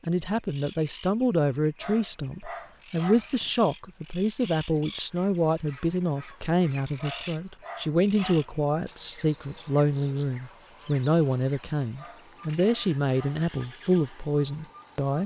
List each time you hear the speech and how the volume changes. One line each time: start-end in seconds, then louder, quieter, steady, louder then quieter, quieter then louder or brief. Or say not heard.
0.1-15.2 steady.